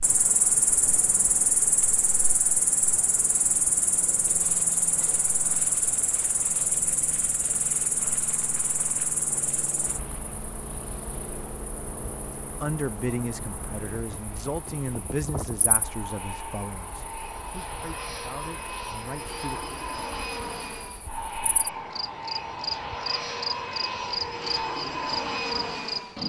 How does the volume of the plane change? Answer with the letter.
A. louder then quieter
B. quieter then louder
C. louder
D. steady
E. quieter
C.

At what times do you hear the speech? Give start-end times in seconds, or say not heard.
12.6-19.6.